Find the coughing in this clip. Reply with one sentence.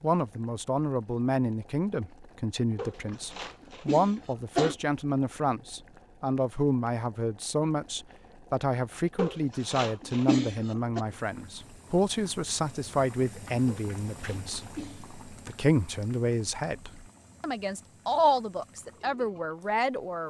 You can hear the coughing from 2.8 to 4.8 s, from 9.2 to 11.0 s and from 13.7 to 15.1 s.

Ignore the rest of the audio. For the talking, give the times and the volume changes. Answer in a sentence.
You can hear the talking from 0.0 to 20.2 s, at a steady volume.